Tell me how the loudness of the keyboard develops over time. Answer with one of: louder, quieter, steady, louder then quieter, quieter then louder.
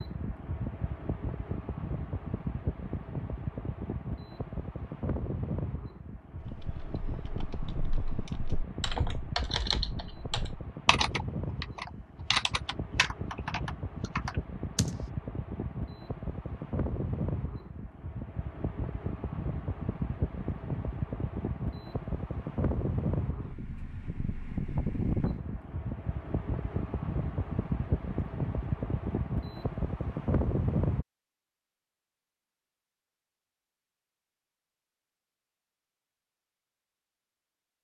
louder then quieter.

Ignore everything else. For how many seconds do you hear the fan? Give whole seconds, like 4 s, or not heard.
31 s.